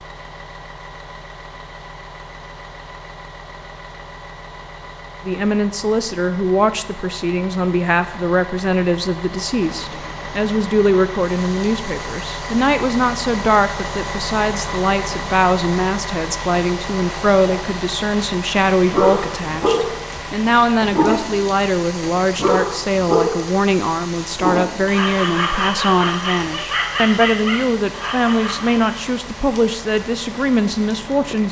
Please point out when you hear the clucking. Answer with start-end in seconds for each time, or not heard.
not heard.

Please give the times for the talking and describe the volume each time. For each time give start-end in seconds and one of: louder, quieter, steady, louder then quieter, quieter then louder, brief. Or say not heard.
5.2-31.4 steady.